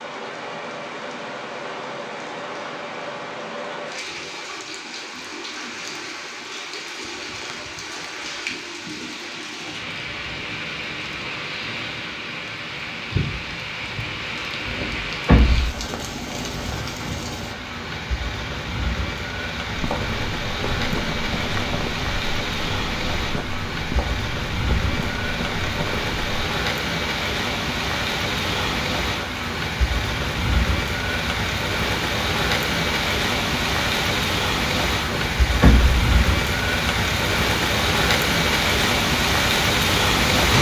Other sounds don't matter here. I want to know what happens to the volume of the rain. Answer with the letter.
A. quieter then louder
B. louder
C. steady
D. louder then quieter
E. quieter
B.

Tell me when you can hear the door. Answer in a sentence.
The door can be heard from 14.7 to 15.8 s and from 35.0 to 36.0 s.